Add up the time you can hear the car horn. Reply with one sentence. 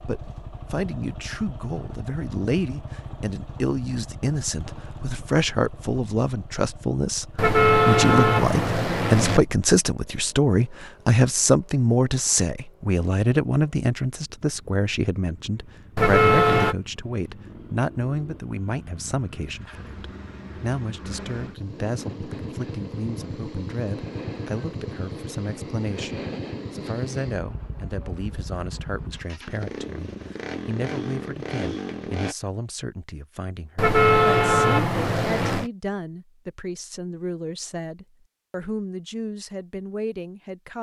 You can hear the car horn for 5 seconds altogether.